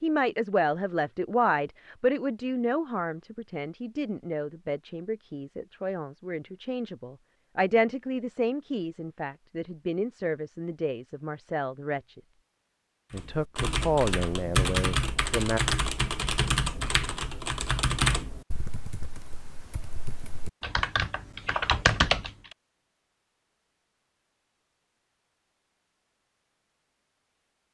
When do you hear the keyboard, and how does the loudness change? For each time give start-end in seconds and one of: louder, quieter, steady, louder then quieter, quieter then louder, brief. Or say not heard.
13.1-22.6 quieter then louder.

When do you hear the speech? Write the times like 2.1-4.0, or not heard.
0.0-12.2, 13.1-15.6.